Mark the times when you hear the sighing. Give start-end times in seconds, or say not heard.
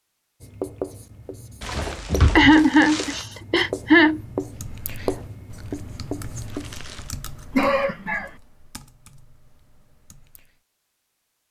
2.4-4.2, 7.5-8.3.